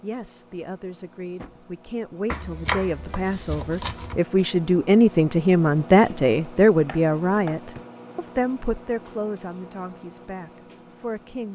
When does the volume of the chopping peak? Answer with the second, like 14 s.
3 s.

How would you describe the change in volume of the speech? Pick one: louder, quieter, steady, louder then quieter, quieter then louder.
louder then quieter.